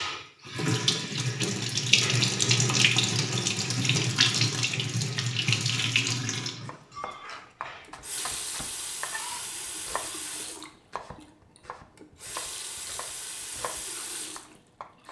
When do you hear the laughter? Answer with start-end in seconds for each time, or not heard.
not heard.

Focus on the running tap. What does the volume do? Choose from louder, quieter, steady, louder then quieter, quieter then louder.
quieter.